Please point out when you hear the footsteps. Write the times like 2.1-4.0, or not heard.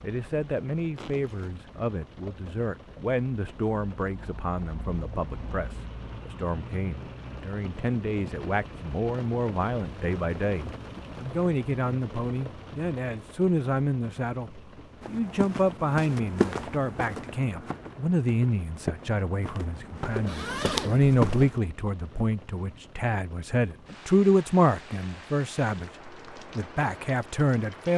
15.0-21.5.